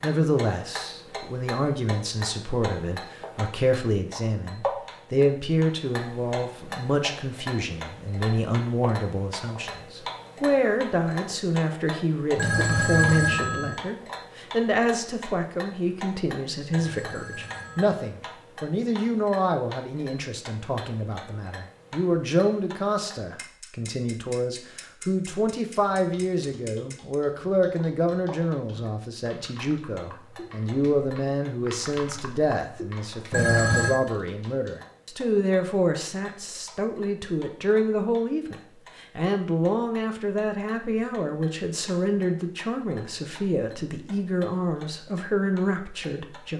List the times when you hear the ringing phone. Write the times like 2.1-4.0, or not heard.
12.3-13.8, 16.7-18.1, 33.3-34.0.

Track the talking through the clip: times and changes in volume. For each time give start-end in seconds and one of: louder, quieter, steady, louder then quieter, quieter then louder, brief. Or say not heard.
0.0-46.5 steady.